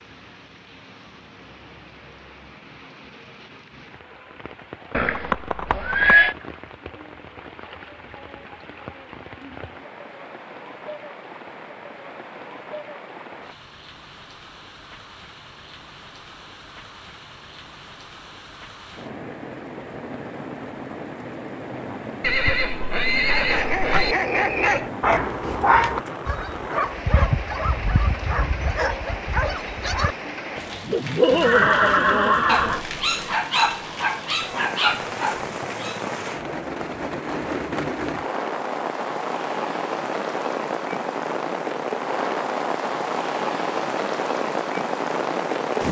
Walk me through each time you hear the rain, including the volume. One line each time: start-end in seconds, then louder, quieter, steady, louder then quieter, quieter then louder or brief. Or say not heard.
0.0-45.8 louder.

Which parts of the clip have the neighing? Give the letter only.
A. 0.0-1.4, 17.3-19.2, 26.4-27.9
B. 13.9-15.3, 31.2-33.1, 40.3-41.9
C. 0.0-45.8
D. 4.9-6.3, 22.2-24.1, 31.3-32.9
D.